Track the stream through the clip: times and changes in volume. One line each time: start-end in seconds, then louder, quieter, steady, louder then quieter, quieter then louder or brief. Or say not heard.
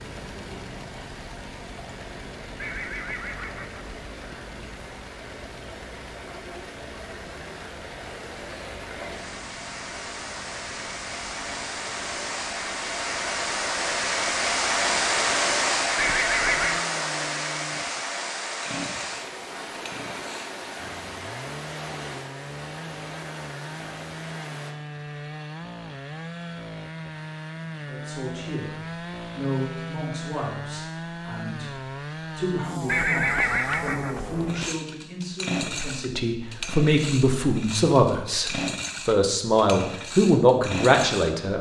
0.0-24.8 louder then quieter.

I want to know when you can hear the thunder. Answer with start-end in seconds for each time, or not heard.
not heard.